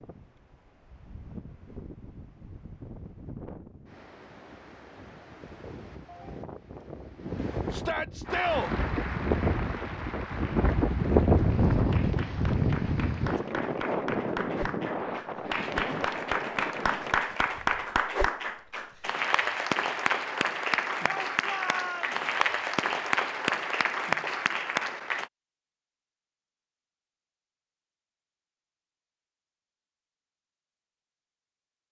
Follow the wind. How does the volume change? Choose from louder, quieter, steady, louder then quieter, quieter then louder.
louder then quieter.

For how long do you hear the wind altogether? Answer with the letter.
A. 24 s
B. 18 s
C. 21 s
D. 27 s
B.